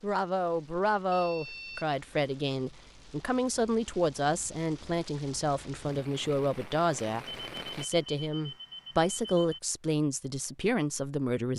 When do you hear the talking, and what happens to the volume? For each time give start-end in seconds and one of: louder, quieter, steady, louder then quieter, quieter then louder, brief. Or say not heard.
0.0-11.5 steady.